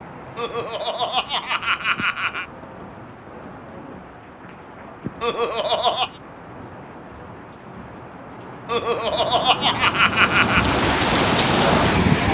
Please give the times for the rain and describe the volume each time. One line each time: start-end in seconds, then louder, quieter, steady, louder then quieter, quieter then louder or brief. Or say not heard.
0.0-12.2 louder.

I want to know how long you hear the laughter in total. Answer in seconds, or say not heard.
5 s.